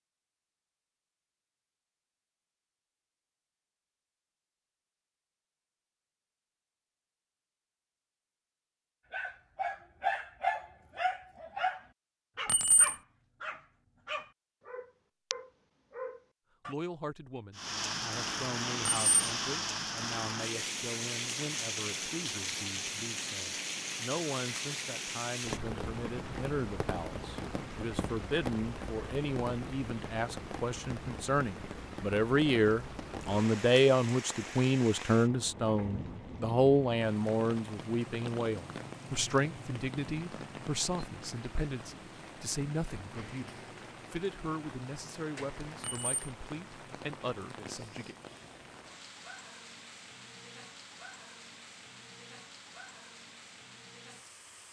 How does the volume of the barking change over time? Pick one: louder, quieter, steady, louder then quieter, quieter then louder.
quieter.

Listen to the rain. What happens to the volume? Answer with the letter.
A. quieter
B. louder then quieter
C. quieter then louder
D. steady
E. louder
A.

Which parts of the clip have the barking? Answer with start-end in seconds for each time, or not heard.
9.1-16.8.